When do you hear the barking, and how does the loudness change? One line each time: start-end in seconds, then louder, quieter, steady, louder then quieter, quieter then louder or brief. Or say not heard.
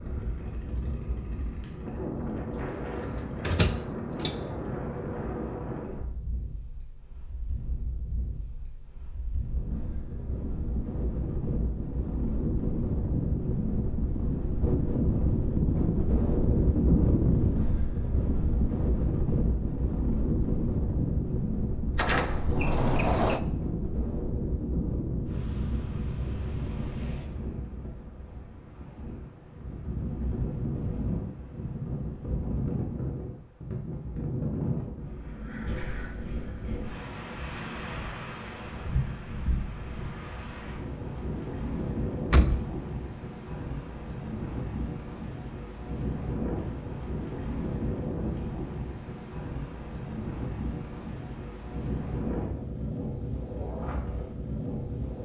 not heard.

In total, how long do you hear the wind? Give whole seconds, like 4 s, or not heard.
55 s.